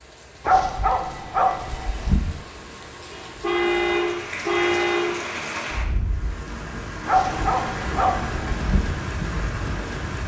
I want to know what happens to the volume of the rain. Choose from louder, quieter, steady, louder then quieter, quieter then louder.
louder.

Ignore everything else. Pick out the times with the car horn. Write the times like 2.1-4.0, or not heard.
3.1-5.1.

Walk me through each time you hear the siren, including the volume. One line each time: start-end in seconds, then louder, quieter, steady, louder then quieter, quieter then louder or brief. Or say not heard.
not heard.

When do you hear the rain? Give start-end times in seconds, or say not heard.
0.0-10.2.